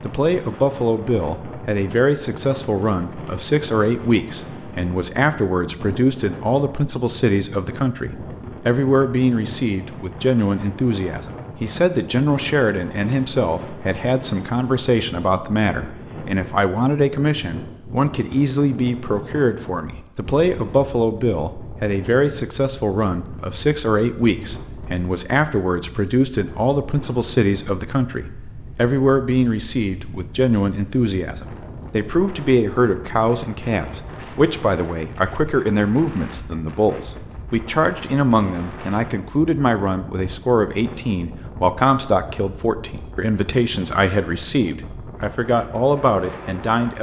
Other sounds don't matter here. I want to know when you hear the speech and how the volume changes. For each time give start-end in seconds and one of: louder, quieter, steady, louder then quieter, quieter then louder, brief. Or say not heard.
0.0-46.9 steady.